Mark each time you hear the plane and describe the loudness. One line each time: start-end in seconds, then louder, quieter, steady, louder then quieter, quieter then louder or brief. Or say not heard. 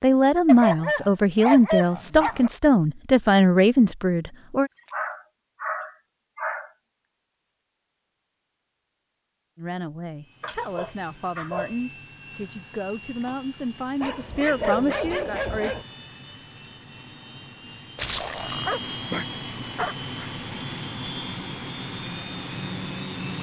10.2-23.3 louder.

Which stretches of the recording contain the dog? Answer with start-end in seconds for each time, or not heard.
0.5-2.5, 4.9-6.7, 10.4-11.8, 14.0-15.8, 18.6-20.2.